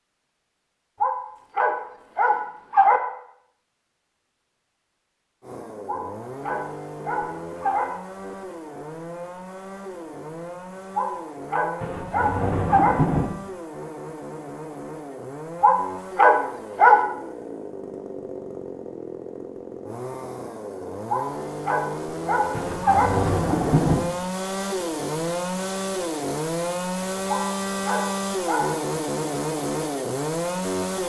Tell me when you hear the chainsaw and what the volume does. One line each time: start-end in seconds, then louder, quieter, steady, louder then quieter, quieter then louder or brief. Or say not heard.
5.4-31.0 louder.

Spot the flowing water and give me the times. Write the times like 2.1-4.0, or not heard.
not heard.